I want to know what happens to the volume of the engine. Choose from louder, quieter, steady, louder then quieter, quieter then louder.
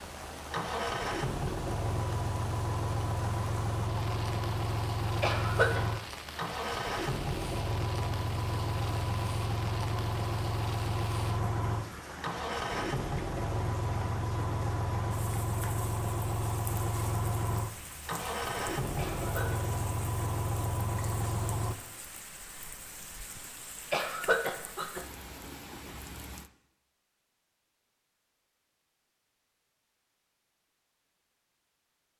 steady.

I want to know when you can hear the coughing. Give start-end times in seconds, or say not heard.
5.2-5.8, 18.9-19.6, 23.9-25.0.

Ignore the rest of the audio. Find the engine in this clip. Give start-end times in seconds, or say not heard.
0.0-21.8.